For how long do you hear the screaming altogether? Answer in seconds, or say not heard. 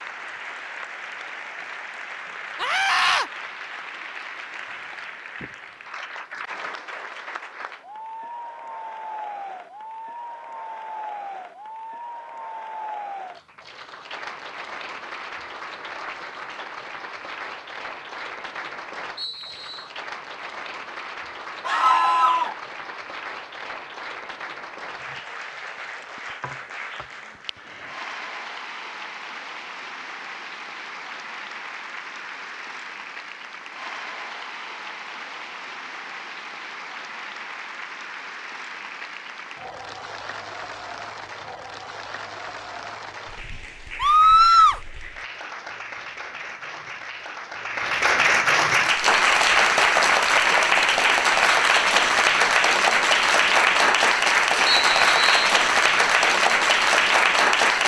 2 s.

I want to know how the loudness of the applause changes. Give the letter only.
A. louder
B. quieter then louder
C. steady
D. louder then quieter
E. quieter
A.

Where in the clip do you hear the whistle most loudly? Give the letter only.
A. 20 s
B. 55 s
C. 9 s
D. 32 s
B.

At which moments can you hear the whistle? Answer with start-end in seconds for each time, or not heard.
19.1-19.9, 54.6-55.4.